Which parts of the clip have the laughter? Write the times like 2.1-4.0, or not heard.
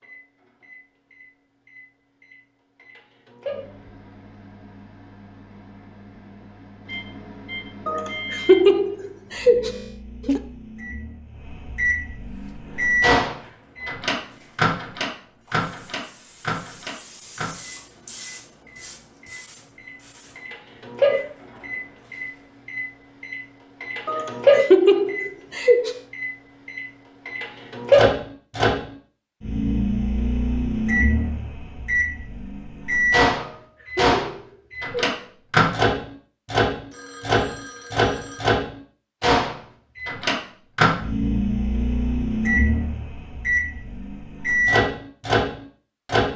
7.8-10.4, 24.1-25.9, 33.3-35.3.